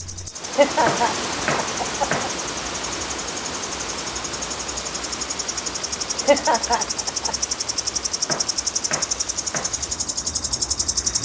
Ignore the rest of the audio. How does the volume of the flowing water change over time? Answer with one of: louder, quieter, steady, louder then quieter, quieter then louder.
quieter.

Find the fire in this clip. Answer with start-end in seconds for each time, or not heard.
not heard.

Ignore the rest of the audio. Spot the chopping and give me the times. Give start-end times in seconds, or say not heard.
0.8-2.4, 8.2-9.8.